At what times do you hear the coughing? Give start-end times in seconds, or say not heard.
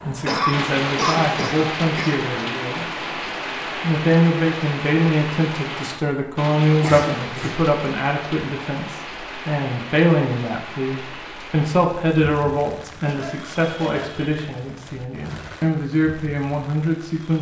0.2-2.2, 6.8-7.6, 13.0-14.2.